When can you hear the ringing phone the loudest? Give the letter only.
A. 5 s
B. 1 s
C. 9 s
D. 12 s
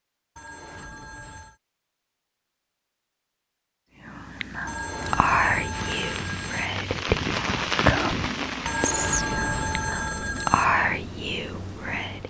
C.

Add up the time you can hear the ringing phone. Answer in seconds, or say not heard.
5 s.